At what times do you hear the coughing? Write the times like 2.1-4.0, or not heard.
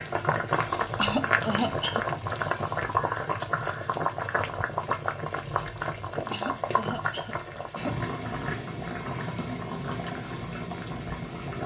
0.9-2.0, 6.3-8.0.